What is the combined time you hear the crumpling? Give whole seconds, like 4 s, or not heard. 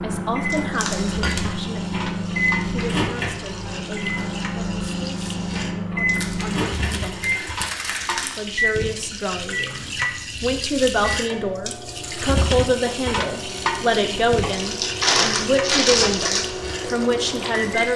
5 s.